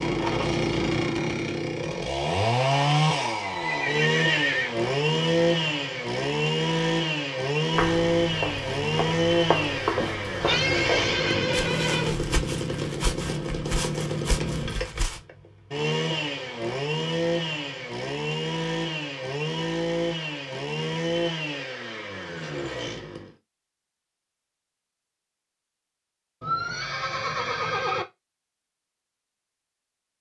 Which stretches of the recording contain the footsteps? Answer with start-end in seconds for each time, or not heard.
7.7-15.2.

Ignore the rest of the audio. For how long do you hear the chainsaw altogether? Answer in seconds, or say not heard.
23 s.